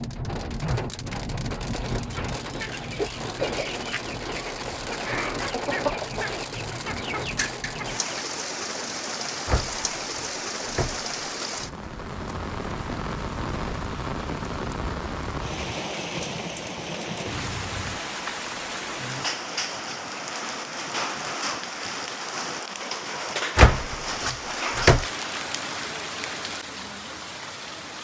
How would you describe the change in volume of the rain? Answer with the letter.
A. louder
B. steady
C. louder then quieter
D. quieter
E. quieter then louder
B.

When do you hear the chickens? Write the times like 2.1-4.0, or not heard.
1.7-8.2.